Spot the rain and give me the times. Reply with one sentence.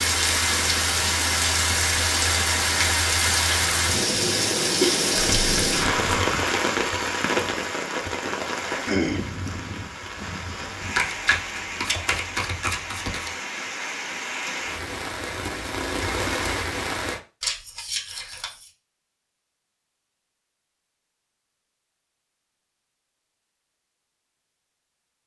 The rain can be heard from 0.0 to 17.2 s.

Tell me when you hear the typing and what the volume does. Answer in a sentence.
The typing can't be heard in this clip.